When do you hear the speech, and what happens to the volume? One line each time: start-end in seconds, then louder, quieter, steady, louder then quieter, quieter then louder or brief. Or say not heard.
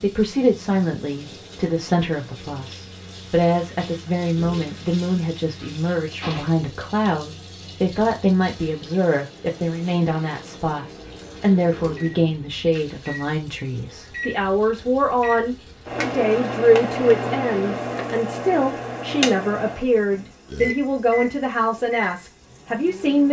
0.0-23.2 steady.